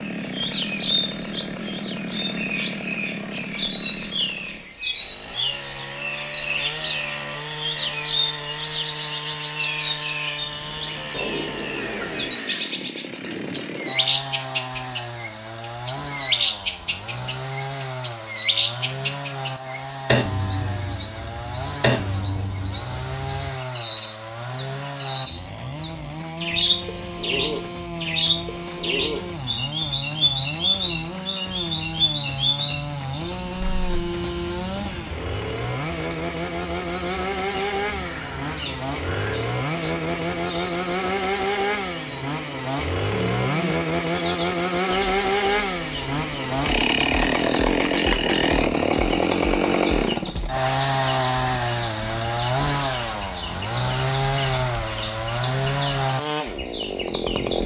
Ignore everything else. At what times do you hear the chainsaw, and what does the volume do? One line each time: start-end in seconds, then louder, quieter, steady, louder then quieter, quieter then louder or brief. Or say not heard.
0.0-57.6 louder.